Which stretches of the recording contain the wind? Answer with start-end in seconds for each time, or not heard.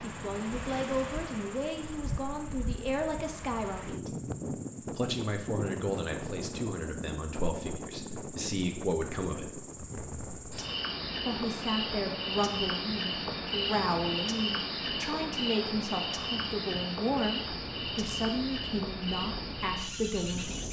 0.0-20.6.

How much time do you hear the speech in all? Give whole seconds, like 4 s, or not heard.
18 s.